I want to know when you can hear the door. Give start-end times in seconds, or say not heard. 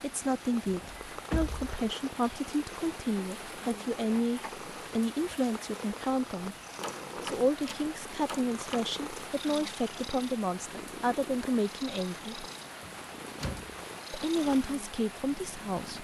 0.7-1.6, 6.8-8.8, 12.8-13.8.